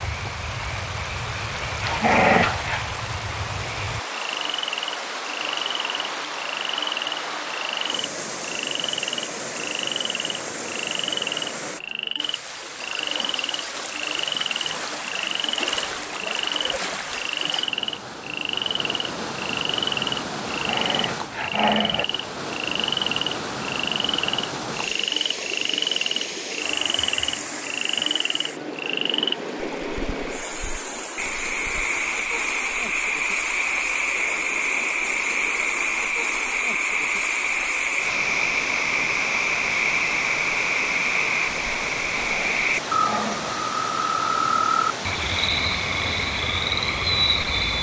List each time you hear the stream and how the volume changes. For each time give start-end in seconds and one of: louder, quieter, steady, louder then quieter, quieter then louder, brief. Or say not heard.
0.0-47.7 steady.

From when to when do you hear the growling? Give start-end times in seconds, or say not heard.
1.8-2.8, 20.6-22.1, 42.1-43.5.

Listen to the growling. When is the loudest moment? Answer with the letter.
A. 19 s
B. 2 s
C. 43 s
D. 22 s
B.